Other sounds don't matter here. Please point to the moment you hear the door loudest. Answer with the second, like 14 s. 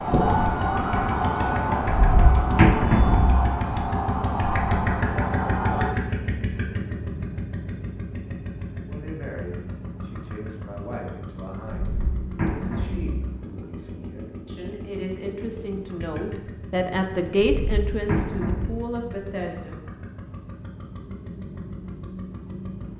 3 s.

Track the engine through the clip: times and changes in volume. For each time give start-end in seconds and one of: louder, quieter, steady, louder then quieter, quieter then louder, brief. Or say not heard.
0.0-22.9 quieter.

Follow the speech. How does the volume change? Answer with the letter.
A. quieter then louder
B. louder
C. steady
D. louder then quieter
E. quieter
B.